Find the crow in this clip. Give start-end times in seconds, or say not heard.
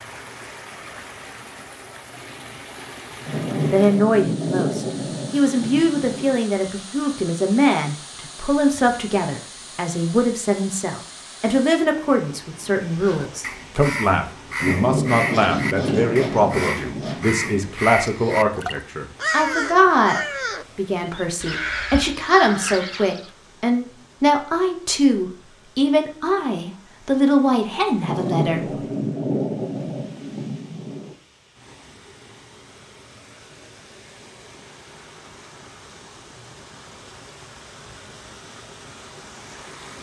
12.9-23.3.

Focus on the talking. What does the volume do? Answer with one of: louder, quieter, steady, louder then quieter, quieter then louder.
steady.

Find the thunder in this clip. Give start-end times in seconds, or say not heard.
3.2-6.4, 14.6-17.7, 28.0-31.1.